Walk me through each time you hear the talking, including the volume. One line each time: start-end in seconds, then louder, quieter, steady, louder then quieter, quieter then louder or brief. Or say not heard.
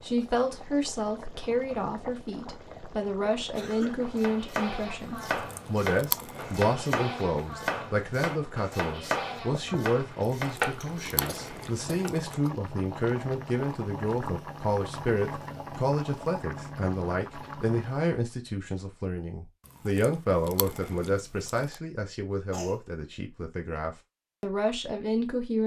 0.0-25.6 steady.